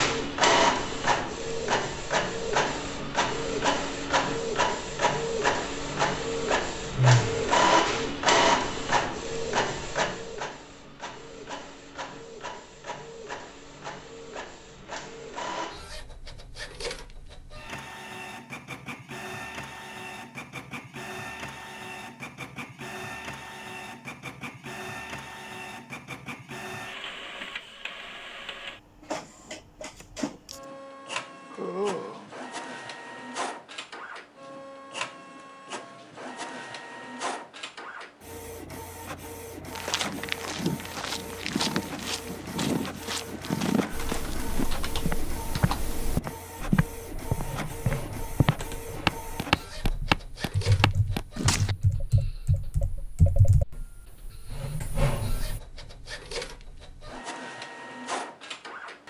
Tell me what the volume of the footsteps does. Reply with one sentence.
The volume of the footsteps goes up.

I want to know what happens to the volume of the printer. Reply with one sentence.
The volume of the printer goes down.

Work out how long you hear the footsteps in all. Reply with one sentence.
You can hear the footsteps for 12 seconds altogether.